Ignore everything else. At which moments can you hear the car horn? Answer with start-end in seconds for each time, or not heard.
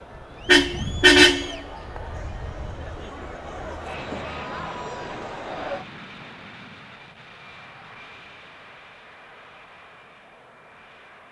0.5-1.6.